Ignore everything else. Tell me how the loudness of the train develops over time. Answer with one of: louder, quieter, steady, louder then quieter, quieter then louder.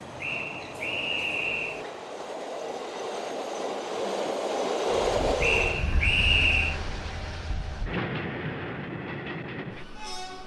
louder then quieter.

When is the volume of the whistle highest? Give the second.
6 s.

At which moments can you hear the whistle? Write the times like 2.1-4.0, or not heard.
0.2-1.9, 5.4-6.8.